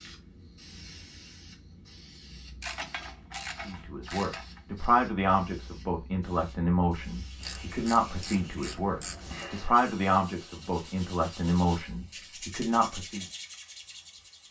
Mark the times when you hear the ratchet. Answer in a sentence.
The ratchet can be heard from 2.6 to 4.9 s and from 7.4 to 9.4 s.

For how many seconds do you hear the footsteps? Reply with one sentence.
You can't hear the footsteps here.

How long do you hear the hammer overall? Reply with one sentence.
The hammer can't be heard in this clip.